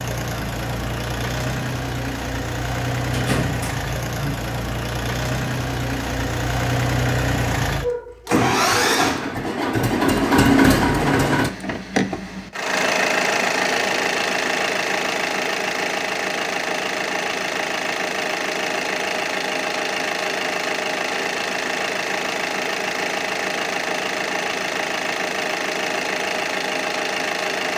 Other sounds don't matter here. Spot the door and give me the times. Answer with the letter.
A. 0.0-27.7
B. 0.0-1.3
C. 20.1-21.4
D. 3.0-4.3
D.